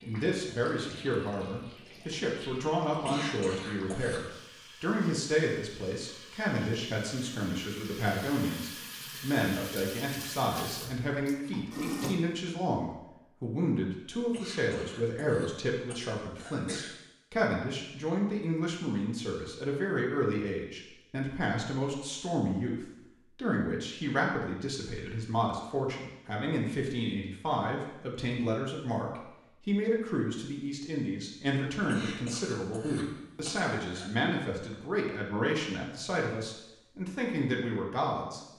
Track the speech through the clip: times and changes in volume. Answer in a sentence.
You can hear the speech from 0.0 to 38.5 s, at a steady volume.